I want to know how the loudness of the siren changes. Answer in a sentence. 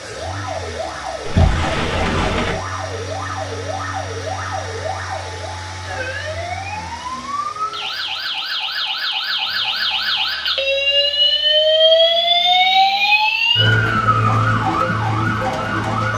The loudness of the siren goes up.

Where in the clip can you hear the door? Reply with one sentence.
The door can be heard from 1.2 to 2.6 s.